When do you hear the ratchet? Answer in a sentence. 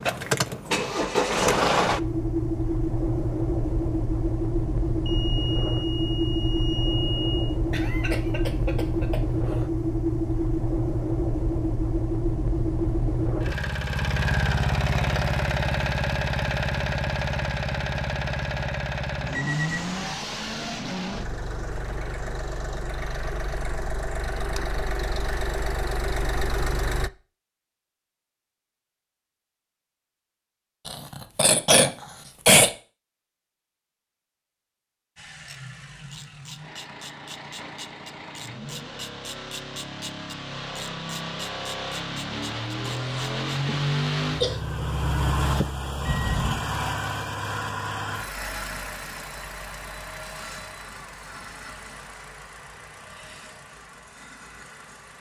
You can hear the ratchet from 35.5 to 43.6 s.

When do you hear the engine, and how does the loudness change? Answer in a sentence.
You can hear the engine from 0.0 to 27.1 s, getting quieter; and from 35.1 to 55.1 s, getting louder then quieter.